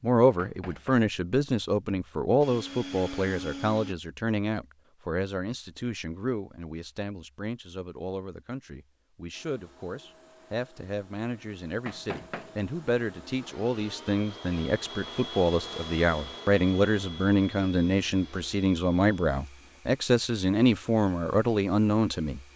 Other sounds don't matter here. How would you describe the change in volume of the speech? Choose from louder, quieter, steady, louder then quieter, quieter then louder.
quieter then louder.